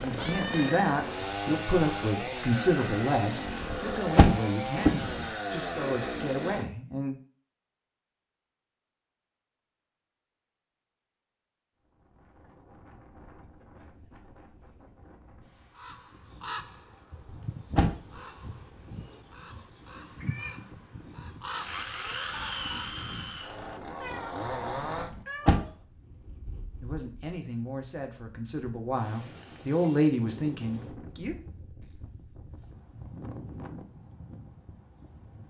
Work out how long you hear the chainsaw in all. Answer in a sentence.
You can hear the chainsaw for 10 seconds altogether.